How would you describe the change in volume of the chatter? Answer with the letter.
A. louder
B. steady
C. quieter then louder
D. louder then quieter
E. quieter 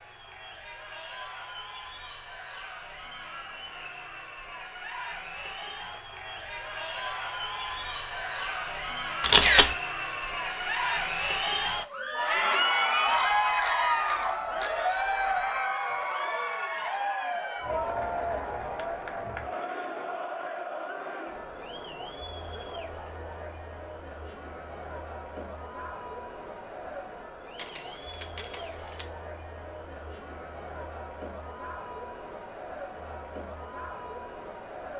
D.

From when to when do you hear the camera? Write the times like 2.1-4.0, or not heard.
9.2-9.8, 13.1-15.4, 27.6-29.1.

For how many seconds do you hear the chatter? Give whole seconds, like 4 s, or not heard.
35 s.